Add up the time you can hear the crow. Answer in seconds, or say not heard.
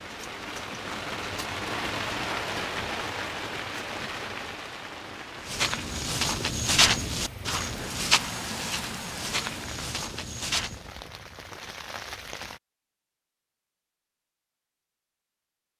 not heard.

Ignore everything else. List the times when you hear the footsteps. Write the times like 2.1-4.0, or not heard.
5.4-10.8.